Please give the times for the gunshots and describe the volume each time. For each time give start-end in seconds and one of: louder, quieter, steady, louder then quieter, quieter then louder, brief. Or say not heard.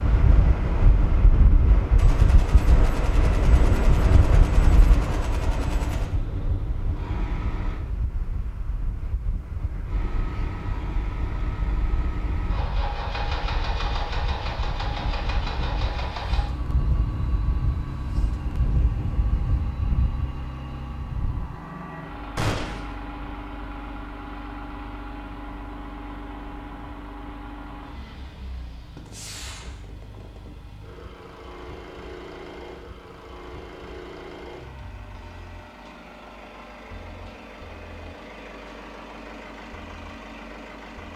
1.9-6.2 steady
22.4-23.0 brief
28.9-30.6 brief.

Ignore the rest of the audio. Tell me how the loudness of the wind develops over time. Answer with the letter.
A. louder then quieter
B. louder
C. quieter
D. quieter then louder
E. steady
D.